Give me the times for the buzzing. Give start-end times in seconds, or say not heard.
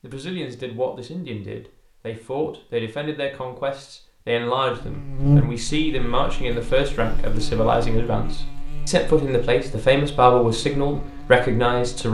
4.8-12.0.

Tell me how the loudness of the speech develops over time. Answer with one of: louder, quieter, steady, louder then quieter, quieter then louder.
louder.